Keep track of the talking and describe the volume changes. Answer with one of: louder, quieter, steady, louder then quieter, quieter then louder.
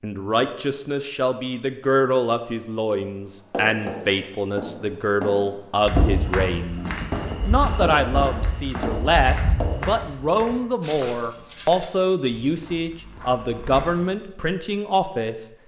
steady.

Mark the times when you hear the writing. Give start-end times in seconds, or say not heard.
3.5-9.9.